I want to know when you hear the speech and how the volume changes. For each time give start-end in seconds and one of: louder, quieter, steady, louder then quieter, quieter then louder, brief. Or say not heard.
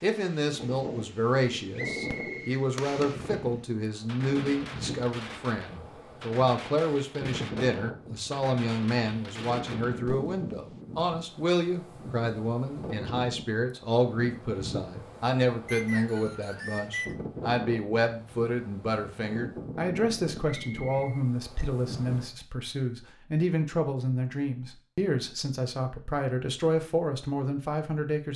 0.0-28.3 steady.